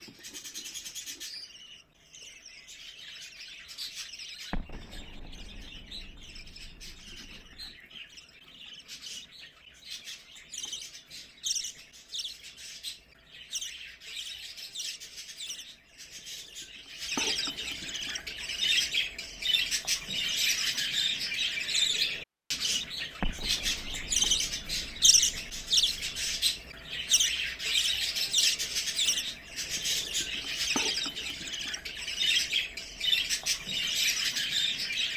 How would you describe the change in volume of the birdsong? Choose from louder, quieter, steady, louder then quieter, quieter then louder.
louder.